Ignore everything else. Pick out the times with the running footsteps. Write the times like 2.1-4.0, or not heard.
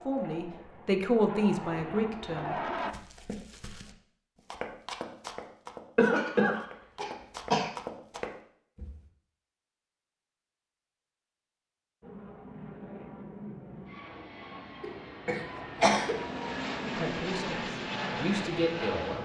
2.8-9.0.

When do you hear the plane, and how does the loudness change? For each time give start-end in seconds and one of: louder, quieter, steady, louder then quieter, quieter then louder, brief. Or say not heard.
0.0-3.0 brief
12.0-19.2 louder.